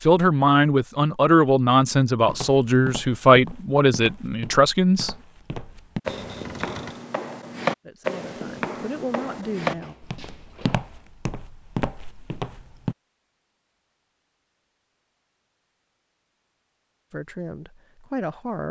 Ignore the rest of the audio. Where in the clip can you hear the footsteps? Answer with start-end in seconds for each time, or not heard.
2.2-12.9.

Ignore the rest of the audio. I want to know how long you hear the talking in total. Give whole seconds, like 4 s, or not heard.
9 s.